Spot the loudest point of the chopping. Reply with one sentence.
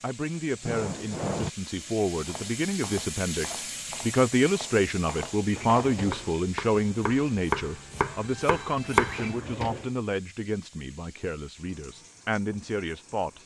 The volume of the chopping peaks at 9 seconds.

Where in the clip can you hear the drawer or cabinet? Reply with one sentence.
You can hear the drawer or cabinet from 0.7 to 1.5 s, from 5.5 to 6.3 s and from 9.1 to 9.9 s.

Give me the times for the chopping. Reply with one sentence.
The chopping can be heard from 2.1 to 9.3 s.